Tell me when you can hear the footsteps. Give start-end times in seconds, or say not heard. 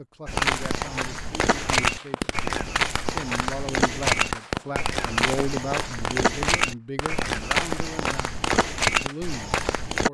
0.2-10.1.